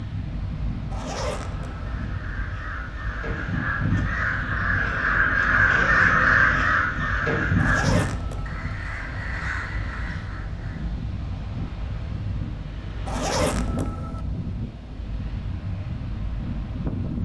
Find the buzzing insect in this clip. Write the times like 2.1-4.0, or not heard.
not heard.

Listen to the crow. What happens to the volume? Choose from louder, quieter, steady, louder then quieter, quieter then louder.
louder then quieter.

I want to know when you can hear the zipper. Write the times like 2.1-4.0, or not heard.
0.9-2.0, 7.5-8.8, 13.1-14.2.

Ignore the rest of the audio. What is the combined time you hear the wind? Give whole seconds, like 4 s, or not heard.
17 s.